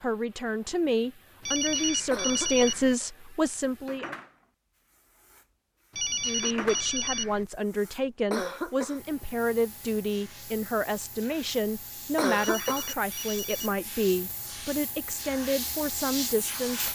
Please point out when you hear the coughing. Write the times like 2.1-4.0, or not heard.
2.1-3.1, 8.3-9.0, 12.2-12.9.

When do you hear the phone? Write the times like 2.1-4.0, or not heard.
1.4-3.0, 6.0-7.5, 12.3-13.8.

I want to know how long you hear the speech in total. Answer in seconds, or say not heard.
15 s.